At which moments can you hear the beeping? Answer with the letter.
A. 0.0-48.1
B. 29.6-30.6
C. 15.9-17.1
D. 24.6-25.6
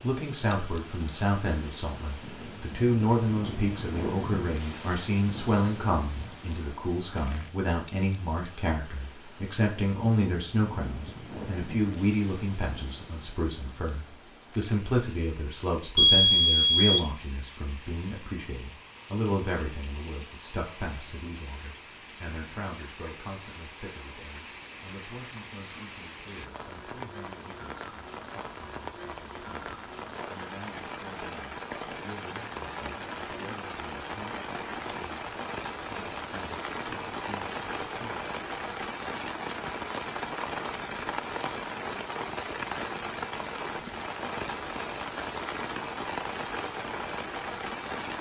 C.